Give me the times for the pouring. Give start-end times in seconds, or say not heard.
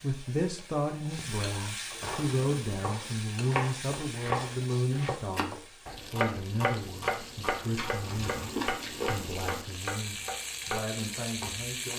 not heard.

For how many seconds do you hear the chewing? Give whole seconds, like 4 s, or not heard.
2 s.